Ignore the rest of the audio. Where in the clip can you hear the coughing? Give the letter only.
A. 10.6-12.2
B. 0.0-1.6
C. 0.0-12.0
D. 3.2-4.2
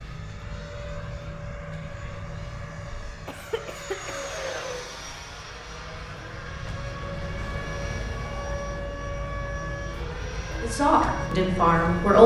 D.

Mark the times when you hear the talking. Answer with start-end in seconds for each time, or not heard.
10.6-12.2.